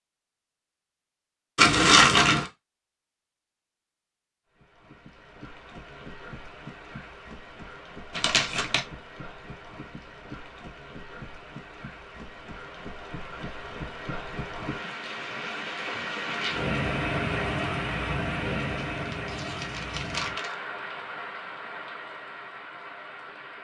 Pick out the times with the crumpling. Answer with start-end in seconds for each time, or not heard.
1.6-2.5, 8.2-8.8, 18.8-20.6.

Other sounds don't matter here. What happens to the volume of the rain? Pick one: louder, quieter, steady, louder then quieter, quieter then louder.
louder then quieter.